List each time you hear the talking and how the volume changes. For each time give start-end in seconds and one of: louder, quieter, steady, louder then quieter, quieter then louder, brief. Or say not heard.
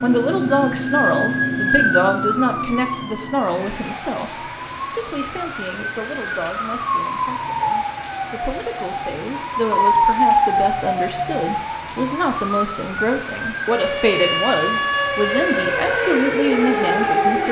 0.0-17.4 quieter then louder.